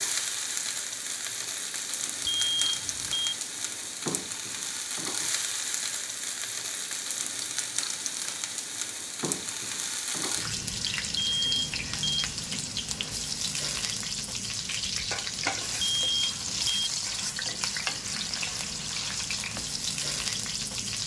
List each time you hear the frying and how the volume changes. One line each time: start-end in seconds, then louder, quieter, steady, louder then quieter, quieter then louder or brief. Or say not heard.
0.0-21.0 steady.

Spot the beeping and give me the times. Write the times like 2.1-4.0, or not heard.
2.2-3.4, 11.2-12.2, 15.8-16.9.